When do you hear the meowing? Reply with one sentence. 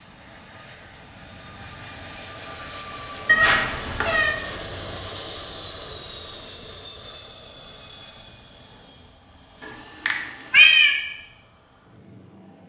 The meowing can be heard from 3.2 to 4.3 s and from 9.6 to 10.9 s.